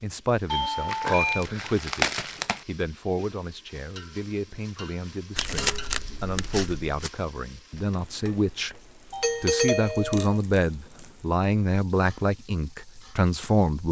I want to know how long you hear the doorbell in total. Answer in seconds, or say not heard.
2 s.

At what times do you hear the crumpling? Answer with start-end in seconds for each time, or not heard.
0.8-2.6, 5.3-7.1, 10.1-11.2.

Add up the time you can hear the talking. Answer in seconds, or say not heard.
13 s.